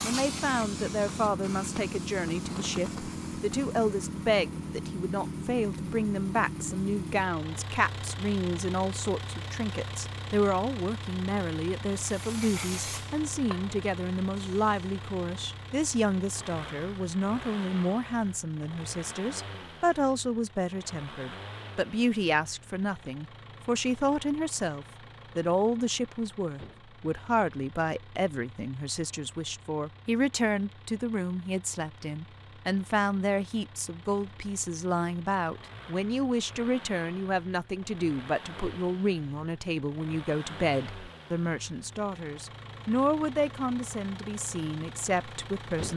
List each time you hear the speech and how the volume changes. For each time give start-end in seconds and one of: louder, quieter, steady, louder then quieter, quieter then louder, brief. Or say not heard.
0.0-45.9 steady.